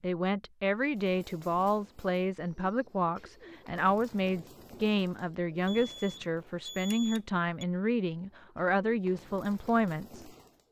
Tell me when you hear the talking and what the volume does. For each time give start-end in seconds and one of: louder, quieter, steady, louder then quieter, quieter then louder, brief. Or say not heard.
0.0-10.3 steady.